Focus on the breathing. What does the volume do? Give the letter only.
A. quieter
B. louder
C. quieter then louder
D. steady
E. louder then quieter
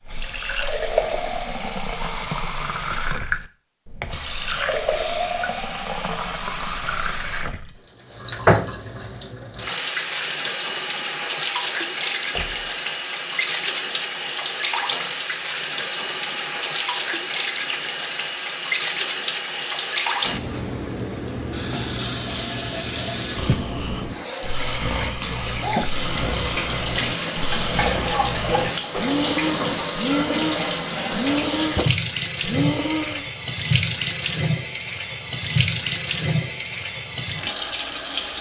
B.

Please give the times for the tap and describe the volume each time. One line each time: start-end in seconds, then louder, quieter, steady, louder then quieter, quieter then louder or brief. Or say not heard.
0.1-38.3 steady.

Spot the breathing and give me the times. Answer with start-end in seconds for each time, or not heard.
23.4-33.2.